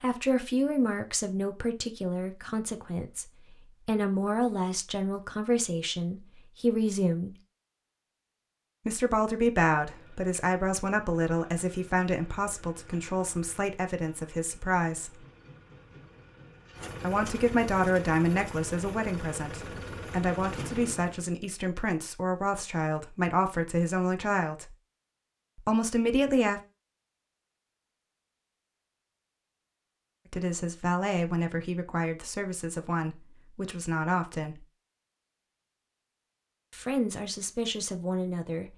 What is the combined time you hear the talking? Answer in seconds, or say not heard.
29 s.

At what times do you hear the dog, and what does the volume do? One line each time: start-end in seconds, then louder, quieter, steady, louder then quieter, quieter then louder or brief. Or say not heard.
not heard.